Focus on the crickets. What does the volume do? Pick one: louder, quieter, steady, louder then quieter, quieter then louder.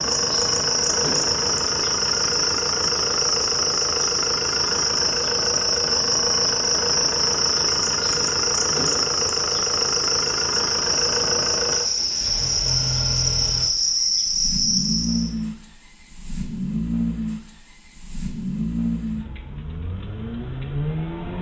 steady.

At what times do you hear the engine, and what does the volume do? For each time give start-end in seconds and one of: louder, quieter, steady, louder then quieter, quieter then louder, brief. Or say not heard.
0.0-21.3 steady.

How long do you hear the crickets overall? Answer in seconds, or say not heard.
15 s.